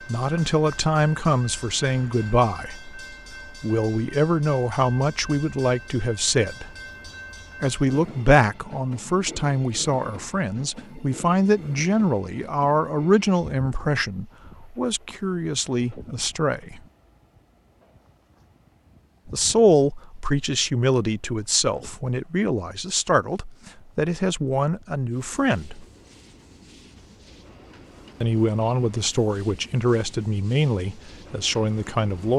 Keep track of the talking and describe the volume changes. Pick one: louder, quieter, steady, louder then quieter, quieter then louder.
steady.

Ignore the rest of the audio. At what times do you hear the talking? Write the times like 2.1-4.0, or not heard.
0.1-6.7, 7.6-16.8, 19.2-25.9, 28.2-32.3.